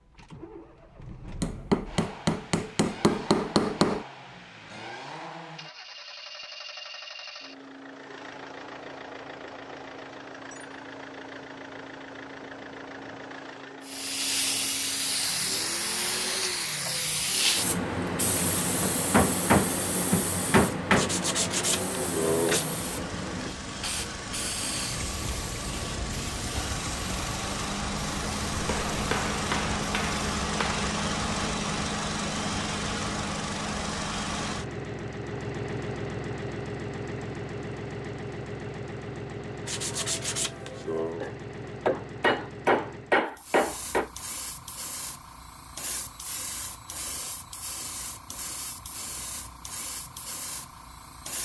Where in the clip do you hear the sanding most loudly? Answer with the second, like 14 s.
22 s.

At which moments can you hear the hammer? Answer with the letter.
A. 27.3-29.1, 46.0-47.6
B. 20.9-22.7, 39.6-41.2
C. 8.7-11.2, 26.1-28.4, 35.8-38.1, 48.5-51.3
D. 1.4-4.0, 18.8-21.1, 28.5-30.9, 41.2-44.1
D.